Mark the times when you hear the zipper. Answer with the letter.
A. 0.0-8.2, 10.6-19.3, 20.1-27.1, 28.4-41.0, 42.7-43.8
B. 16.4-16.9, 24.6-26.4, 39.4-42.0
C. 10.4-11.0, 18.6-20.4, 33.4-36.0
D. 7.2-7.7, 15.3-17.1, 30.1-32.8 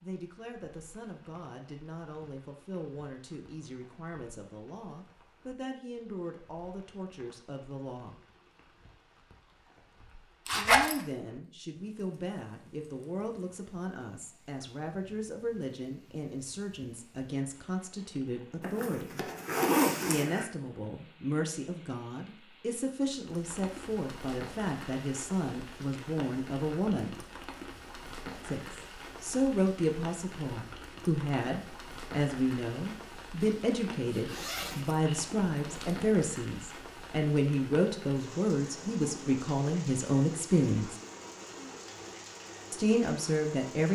C.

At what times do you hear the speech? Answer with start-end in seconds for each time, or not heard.
0.0-8.2, 10.6-19.3, 20.1-27.1, 28.4-41.0, 42.7-43.8.